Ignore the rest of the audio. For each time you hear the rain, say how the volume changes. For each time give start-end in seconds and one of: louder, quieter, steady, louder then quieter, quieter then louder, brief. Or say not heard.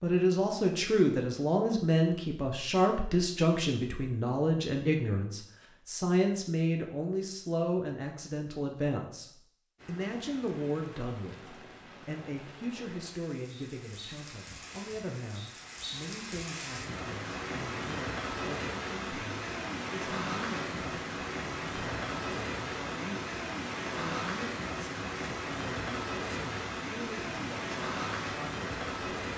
9.8-29.3 louder.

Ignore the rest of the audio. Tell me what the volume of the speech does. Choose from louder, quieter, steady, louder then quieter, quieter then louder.
quieter.